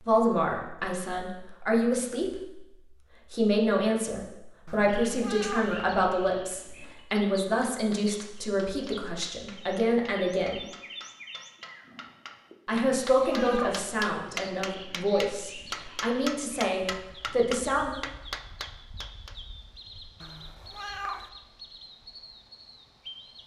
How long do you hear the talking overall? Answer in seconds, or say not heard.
15 s.